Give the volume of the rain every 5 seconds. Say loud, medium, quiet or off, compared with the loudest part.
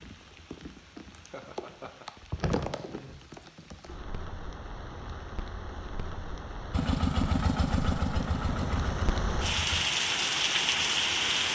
quiet, medium, loud.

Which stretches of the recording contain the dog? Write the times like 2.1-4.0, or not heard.
not heard.